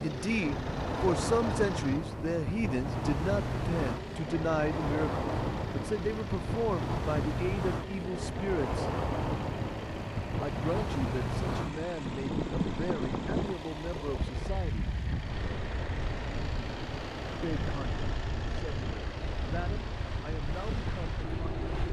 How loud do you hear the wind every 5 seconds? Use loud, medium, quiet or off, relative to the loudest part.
loud, loud, loud, medium, medium.